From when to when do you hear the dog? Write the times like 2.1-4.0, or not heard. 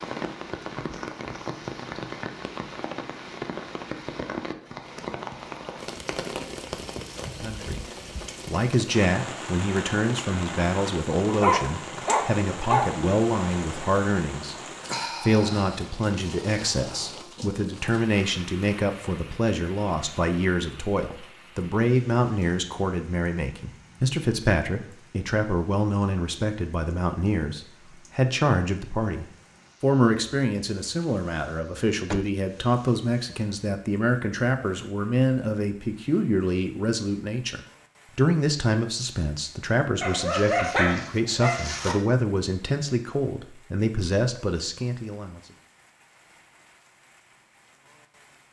11.2-12.9, 40.0-42.0.